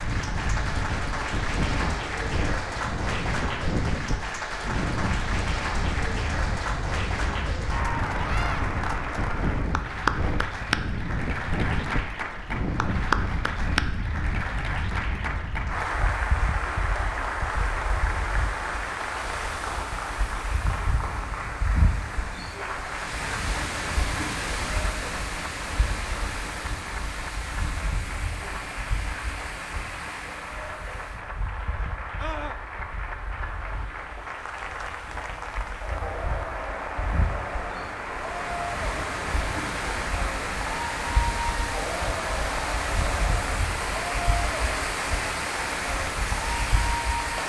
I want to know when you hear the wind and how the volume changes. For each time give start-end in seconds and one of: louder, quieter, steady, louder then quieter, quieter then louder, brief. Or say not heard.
0.0-47.4 quieter then louder.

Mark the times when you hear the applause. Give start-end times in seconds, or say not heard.
0.0-47.4.